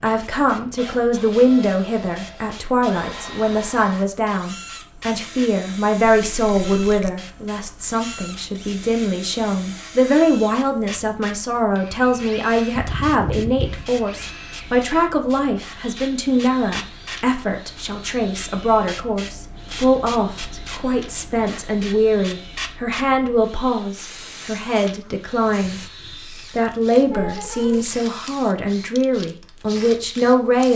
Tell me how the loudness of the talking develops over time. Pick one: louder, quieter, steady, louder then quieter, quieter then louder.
steady.